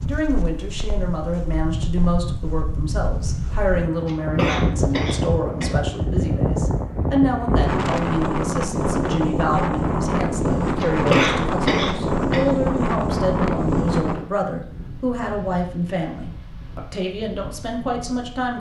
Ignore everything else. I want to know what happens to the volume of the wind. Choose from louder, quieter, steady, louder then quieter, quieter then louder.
louder then quieter.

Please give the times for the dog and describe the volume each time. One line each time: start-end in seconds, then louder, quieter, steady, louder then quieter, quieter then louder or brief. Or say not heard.
not heard.